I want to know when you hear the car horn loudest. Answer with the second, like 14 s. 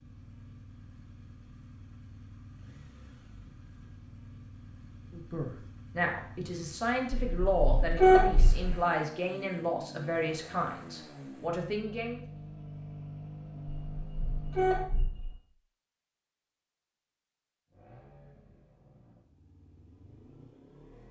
8 s.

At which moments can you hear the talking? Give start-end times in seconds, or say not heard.
5.1-12.2.